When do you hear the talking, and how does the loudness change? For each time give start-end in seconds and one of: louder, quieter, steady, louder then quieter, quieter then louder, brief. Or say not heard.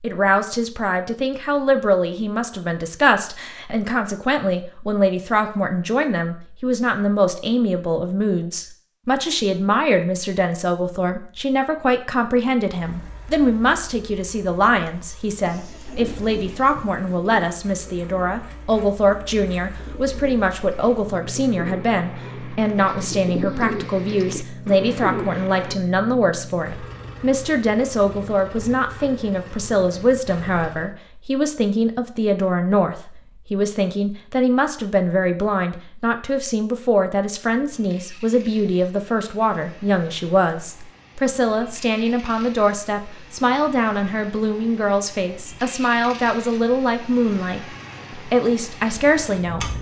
0.0-49.7 steady.